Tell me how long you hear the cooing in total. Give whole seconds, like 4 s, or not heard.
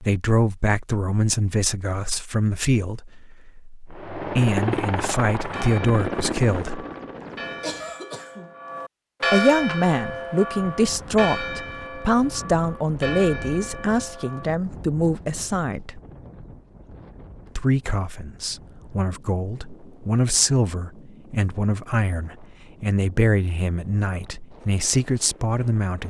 not heard.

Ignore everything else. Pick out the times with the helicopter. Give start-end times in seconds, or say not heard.
3.9-8.0.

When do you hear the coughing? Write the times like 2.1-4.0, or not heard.
7.6-8.6.